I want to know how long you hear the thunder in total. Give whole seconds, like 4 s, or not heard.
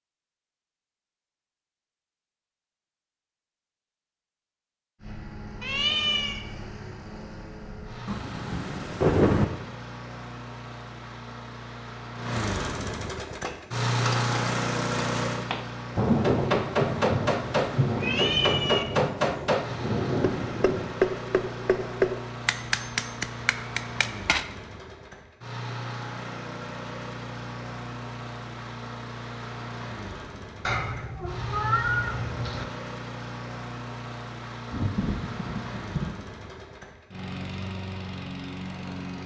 8 s.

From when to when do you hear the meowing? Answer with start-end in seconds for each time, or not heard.
5.6-6.4, 17.9-18.9, 30.6-32.6.